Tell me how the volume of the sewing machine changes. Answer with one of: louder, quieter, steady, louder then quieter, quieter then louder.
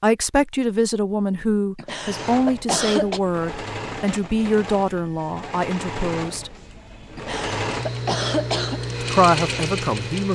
louder.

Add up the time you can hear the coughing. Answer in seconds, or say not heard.
3 s.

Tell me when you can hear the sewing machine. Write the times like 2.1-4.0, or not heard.
2.0-10.3.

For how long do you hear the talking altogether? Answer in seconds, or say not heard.
8 s.